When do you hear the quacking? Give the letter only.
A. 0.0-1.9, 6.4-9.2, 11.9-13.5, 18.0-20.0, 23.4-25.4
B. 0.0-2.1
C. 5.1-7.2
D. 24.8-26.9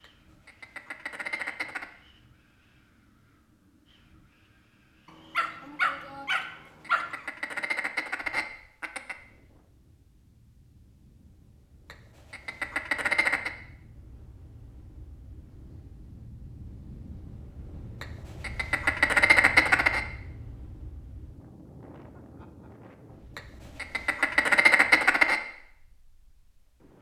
A.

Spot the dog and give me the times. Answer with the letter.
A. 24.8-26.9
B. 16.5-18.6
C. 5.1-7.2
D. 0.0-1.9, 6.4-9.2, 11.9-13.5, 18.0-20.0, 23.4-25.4
C.